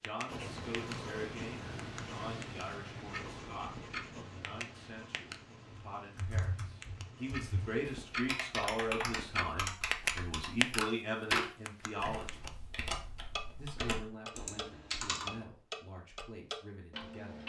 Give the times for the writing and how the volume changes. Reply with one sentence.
The writing can be heard from 0.2 to 8.6 s, getting quieter.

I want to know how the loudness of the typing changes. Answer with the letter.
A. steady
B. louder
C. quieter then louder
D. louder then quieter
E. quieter
D.